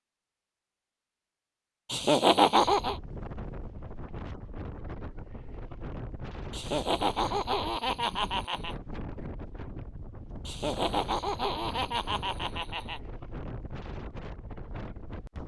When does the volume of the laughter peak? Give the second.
2 s.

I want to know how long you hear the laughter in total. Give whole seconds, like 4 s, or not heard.
6 s.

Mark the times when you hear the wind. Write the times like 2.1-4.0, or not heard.
2.5-15.4.